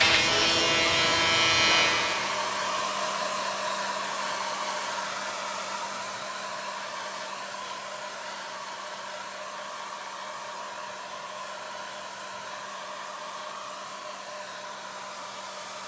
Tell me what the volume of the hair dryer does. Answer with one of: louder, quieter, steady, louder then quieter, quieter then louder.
quieter.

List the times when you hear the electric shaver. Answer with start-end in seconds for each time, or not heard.
0.0-2.9.